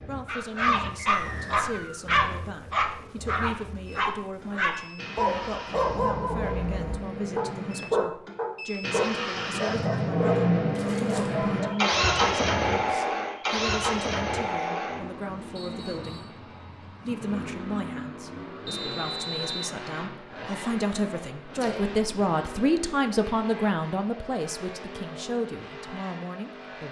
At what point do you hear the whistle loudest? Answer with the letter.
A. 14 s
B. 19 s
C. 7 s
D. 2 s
B.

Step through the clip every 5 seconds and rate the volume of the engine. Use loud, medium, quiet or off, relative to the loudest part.
quiet, medium, loud, quiet, quiet, quiet.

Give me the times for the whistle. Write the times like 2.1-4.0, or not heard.
1.1-2.1, 15.6-16.4, 18.6-19.7.